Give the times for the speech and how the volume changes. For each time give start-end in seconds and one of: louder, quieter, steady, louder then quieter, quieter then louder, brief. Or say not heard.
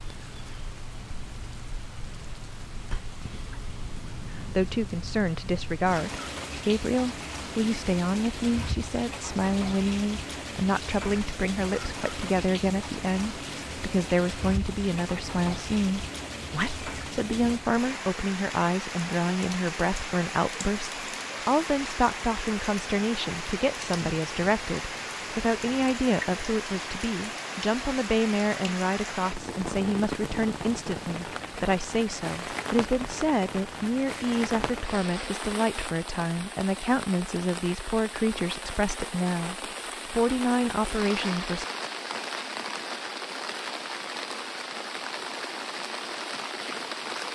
4.3-41.6 steady.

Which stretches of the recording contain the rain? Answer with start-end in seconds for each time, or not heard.
0.0-47.3.